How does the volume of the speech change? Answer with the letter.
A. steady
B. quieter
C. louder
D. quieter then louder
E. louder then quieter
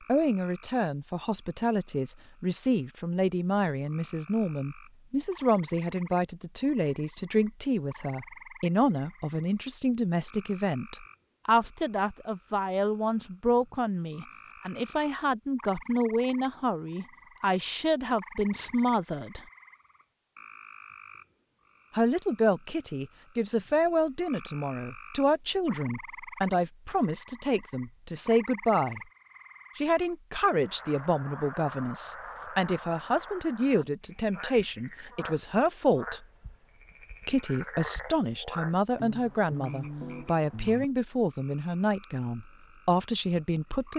A.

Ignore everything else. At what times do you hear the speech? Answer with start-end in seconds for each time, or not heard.
0.1-19.4, 21.9-29.0, 29.8-36.2, 37.2-43.9.